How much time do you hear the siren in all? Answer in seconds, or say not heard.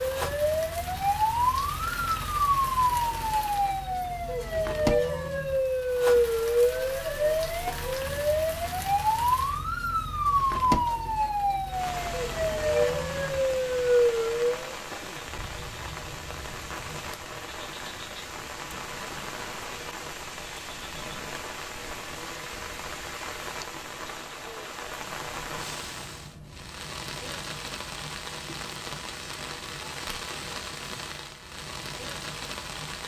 15 s.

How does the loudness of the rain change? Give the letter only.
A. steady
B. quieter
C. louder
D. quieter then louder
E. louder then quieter
A.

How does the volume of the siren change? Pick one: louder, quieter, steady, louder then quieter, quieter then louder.
steady.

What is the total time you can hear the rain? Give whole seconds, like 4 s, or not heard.
33 s.